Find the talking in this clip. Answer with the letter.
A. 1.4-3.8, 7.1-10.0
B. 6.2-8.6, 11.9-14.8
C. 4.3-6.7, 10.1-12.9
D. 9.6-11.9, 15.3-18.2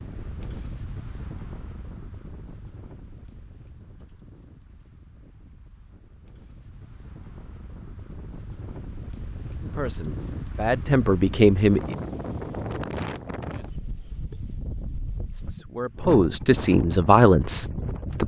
D.